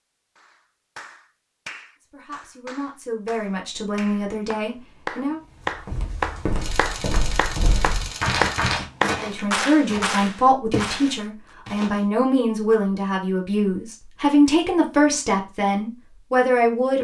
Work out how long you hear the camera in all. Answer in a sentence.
The camera can be heard for 2 seconds in total.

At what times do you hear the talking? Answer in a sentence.
You can hear the talking from 2.1 to 5.4 s and from 9.2 to 16.9 s.